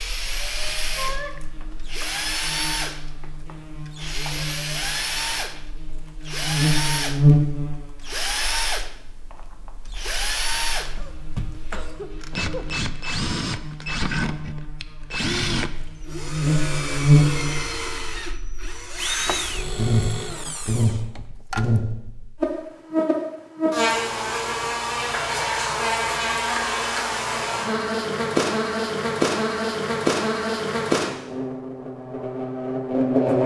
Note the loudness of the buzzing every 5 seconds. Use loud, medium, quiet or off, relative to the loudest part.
quiet, loud, quiet, loud, loud, loud, loud.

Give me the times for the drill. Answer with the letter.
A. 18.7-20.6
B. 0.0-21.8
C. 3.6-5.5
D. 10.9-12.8
B.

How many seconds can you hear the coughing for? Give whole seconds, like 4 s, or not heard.
2 s.